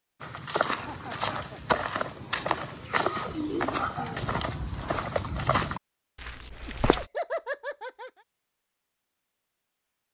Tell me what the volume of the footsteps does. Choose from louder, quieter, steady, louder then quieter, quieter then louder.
steady.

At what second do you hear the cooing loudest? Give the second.
4 s.